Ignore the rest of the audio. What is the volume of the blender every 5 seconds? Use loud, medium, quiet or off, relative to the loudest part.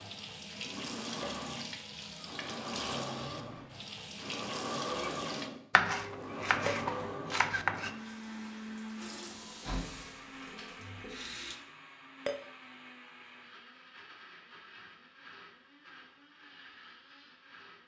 loud, loud, medium, quiet.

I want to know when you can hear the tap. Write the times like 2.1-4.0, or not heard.
0.0-5.5, 8.0-11.6.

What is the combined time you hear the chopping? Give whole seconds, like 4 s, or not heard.
2 s.